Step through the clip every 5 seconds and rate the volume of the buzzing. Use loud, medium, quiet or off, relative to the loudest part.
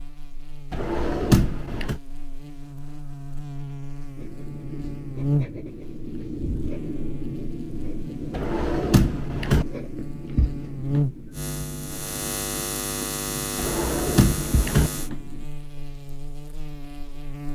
medium, loud, loud, medium.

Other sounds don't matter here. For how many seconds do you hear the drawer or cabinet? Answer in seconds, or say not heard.
4 s.